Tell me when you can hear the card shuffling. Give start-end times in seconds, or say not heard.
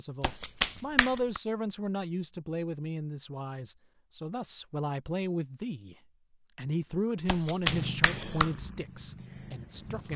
0.2-1.4, 7.2-8.5.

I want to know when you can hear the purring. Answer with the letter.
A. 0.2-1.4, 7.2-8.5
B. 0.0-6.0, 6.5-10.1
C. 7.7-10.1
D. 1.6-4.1
C.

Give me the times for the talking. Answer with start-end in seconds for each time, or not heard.
0.0-6.0, 6.5-10.1.